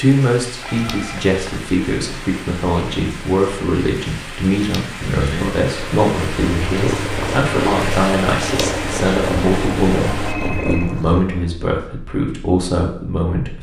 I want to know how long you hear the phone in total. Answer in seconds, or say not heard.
2 s.